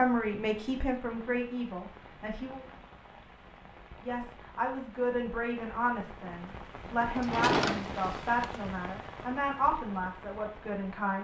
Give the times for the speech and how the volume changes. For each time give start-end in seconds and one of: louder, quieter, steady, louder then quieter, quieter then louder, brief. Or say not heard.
0.0-2.6 brief
4.0-11.2 steady.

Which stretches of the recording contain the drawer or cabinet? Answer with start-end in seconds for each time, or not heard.
7.2-8.2.